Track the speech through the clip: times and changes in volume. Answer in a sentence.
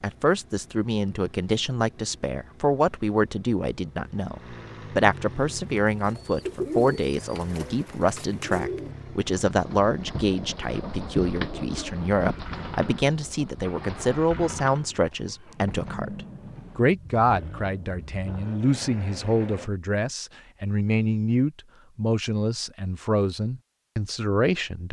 The speech can be heard from 0.0 to 24.8 s, at a steady volume.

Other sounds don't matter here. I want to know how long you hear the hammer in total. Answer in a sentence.
You can't hear the hammer here.